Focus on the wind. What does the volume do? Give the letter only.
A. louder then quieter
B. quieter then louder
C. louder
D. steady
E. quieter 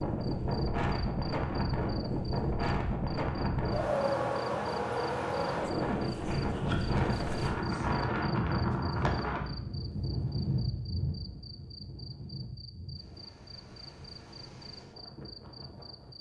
E.